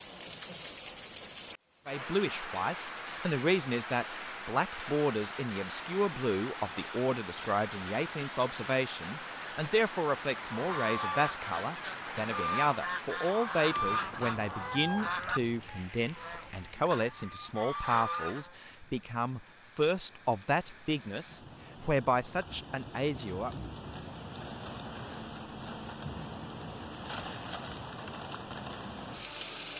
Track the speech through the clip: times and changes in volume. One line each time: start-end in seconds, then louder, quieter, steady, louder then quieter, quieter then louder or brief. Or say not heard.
1.9-23.6 steady.